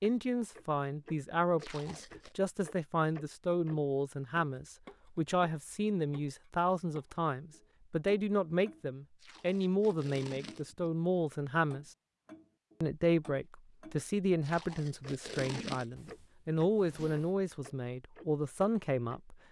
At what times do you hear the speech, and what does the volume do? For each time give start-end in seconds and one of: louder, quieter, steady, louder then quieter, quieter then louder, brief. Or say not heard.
0.0-11.9 steady
12.8-19.4 steady.